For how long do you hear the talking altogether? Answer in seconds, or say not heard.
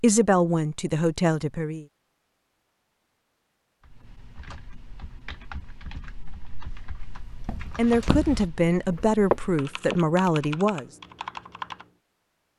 5 s.